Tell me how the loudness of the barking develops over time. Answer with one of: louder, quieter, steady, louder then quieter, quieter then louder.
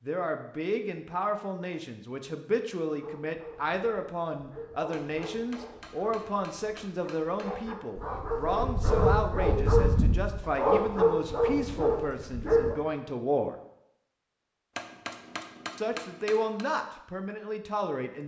louder.